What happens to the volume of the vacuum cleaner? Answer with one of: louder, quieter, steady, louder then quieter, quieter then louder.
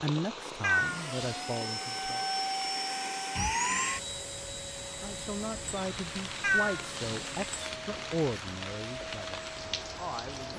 quieter.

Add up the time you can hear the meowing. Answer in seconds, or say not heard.
2 s.